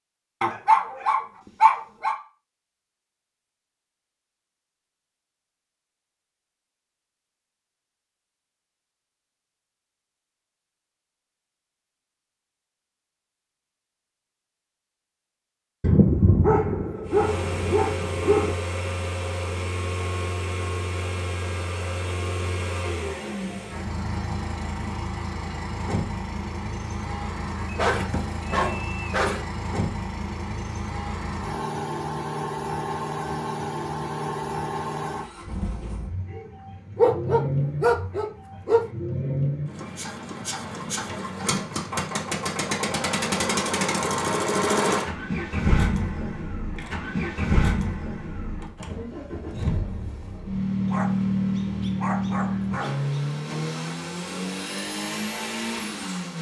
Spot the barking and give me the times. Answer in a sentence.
You can hear the barking from 0.4 to 2.1 s, from 15.8 to 18.6 s, from 27.6 to 29.4 s, from 37.0 to 38.8 s and from 50.9 to 53.2 s.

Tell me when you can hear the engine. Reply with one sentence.
The engine can be heard from 17.1 to 56.3 s.